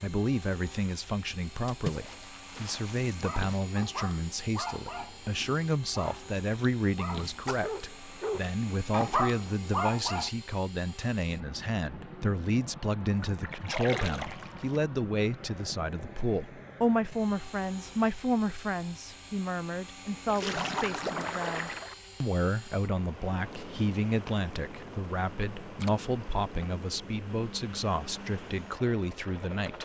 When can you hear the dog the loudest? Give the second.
9 s.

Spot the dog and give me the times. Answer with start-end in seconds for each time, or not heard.
3.1-10.3.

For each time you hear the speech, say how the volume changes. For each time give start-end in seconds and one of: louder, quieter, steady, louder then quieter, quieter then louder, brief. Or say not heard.
0.0-29.7 steady.